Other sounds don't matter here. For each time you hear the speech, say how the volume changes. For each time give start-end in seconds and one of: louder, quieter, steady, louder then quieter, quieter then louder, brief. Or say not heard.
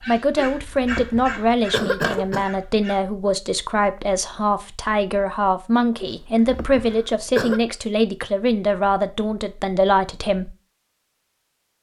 0.1-10.6 steady.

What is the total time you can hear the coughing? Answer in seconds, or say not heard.
4 s.